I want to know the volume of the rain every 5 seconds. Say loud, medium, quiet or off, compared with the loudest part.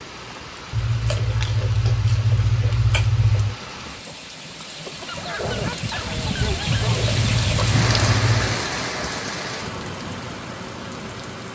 medium, loud, medium.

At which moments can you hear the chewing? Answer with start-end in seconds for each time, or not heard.
0.7-3.5, 6.7-8.6.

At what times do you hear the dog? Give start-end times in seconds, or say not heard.
5.0-7.1.